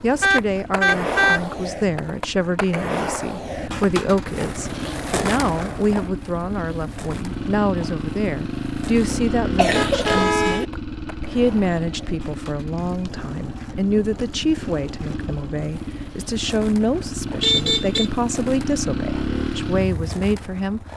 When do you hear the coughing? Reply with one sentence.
The coughing can be heard from 9.1 to 10.7 s.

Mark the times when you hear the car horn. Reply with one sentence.
You can hear the car horn from 0.2 to 1.4 s, from 9.7 to 10.7 s and from 17.4 to 18.1 s.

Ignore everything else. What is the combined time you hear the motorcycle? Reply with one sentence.
You can hear the motorcycle for 21 seconds altogether.